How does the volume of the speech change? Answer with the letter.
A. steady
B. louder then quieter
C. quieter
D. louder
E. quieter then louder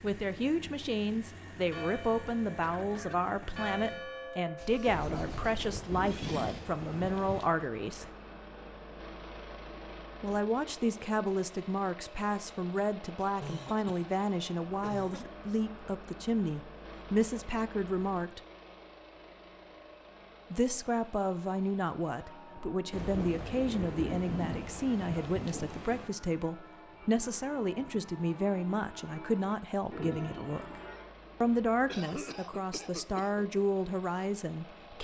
A.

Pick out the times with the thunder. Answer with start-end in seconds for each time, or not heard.
4.8-7.5, 22.9-26.1.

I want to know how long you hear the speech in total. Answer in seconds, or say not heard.
30 s.